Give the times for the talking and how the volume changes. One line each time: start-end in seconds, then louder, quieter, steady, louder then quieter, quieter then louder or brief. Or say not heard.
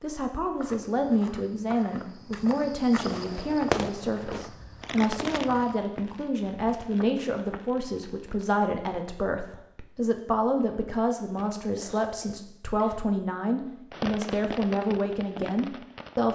0.0-16.2 steady.